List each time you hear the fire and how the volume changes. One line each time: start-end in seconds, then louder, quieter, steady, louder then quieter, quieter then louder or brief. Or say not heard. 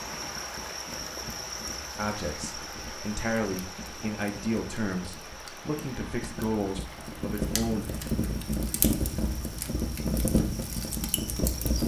0.0-11.8 louder.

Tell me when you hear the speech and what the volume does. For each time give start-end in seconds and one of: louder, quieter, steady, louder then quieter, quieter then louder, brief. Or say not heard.
1.9-8.0 steady.